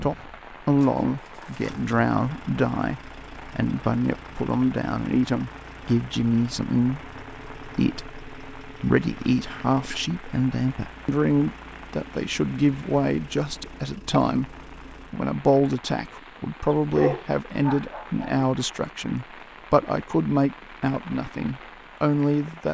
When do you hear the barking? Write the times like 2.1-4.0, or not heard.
16.9-18.4.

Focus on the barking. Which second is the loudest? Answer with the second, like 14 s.
17 s.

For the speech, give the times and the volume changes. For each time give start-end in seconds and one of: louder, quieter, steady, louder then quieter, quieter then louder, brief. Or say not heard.
0.0-22.7 steady.